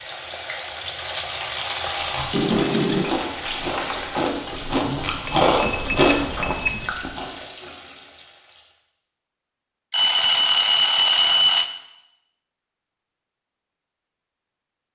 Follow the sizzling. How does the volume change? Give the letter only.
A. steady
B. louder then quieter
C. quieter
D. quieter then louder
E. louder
C.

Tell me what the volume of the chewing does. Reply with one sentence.
The volume of the chewing goes up.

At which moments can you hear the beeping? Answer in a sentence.
You can hear the beeping from 2.3 to 3.0 s, from 5.2 to 6.9 s and from 9.9 to 11.7 s.